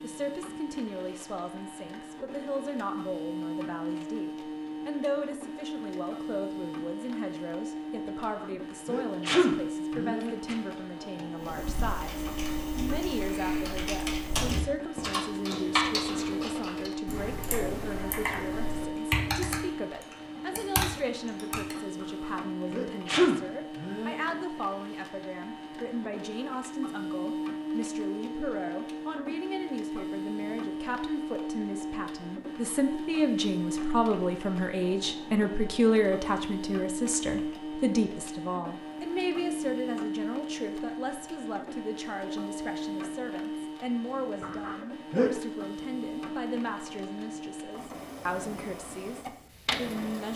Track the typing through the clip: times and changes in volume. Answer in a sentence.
The typing can be heard from 11.4 to 21.8 s, getting louder.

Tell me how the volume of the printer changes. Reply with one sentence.
The volume of the printer stays about the same.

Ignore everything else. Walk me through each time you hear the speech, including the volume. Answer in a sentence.
You can hear the speech from 0.0 to 50.3 s, getting louder then quieter.